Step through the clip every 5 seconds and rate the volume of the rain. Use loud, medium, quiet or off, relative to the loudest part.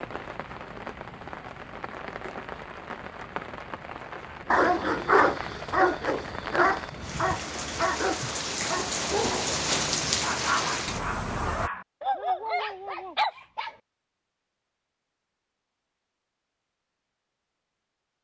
medium, loud, loud, off.